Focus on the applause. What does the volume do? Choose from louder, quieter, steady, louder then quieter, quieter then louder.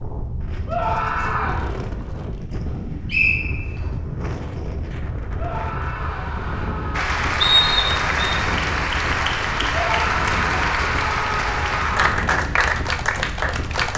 steady.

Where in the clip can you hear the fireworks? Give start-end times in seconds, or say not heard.
not heard.